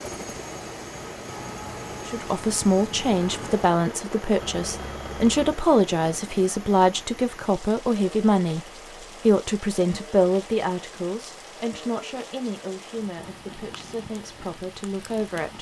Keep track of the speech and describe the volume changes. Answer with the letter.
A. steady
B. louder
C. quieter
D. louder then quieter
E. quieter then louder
C.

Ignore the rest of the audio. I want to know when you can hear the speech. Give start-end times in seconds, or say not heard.
2.0-8.6, 9.2-15.5.